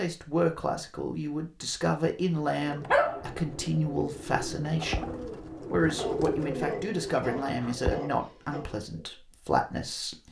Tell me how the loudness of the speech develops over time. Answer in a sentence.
The volume of the speech stays about the same.